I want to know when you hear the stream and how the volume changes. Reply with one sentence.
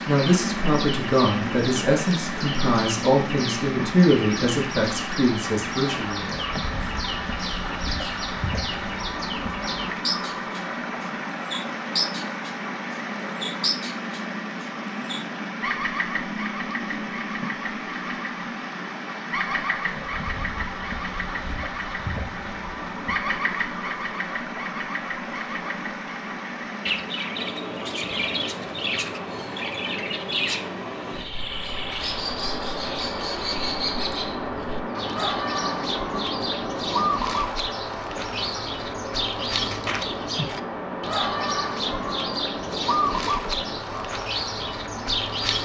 You can hear the stream from 0.0 to 45.6 s, at a steady volume.